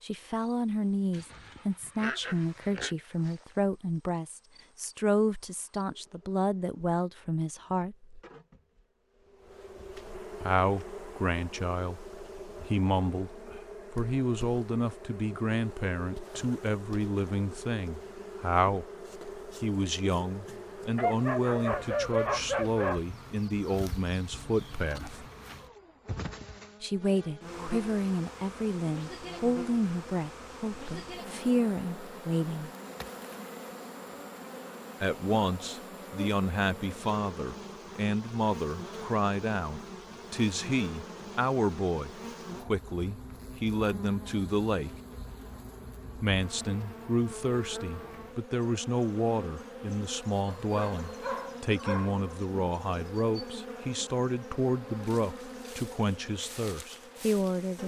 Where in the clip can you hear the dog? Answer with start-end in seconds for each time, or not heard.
1.1-3.0, 20.9-23.0, 50.5-52.2.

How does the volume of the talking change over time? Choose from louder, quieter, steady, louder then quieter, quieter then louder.
steady.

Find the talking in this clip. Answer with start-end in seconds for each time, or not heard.
0.0-8.2, 10.4-18.9, 19.6-25.2, 26.8-32.7, 35.0-44.9, 46.1-57.8.